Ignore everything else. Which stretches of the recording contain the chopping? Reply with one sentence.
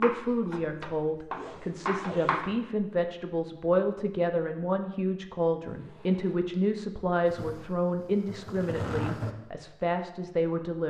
You can hear the chopping from 0.0 to 2.5 s.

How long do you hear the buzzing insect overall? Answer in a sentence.
You can hear the buzzing insect for 2 seconds altogether.